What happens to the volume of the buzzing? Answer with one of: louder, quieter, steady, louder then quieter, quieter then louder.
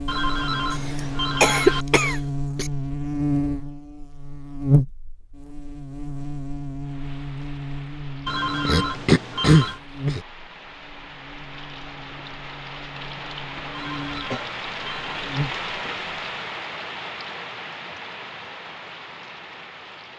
quieter.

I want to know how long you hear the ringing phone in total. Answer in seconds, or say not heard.
5 s.